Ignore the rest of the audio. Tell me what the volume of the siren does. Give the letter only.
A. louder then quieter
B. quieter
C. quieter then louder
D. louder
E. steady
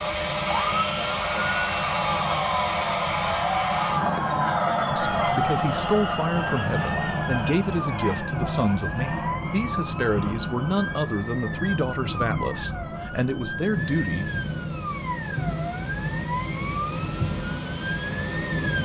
E.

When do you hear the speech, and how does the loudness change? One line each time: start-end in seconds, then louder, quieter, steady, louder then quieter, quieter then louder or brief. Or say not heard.
4.8-14.3 steady.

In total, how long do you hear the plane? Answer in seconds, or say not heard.
19 s.